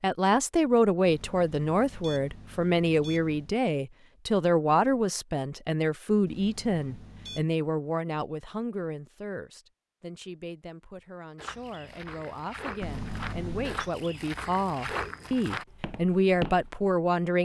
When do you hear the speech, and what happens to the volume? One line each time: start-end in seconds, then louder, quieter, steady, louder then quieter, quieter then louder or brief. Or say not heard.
0.0-17.4 quieter then louder.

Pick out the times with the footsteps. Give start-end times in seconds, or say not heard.
11.3-16.9.